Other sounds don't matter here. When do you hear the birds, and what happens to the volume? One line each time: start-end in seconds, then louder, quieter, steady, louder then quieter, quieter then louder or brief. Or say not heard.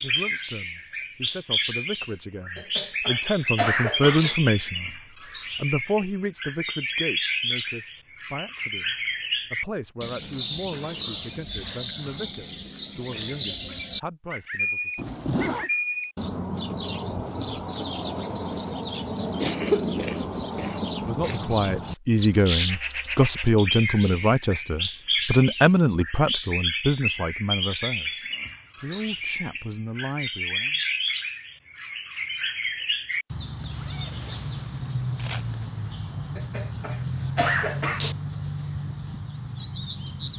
0.0-40.3 steady.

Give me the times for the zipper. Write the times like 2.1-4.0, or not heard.
14.9-15.7, 33.6-35.9.